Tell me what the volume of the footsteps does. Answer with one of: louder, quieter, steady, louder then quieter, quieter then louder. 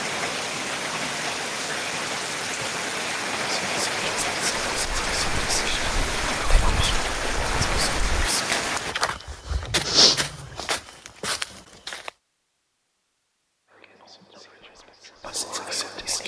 louder then quieter.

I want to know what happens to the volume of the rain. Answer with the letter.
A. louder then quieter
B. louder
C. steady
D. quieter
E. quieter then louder
C.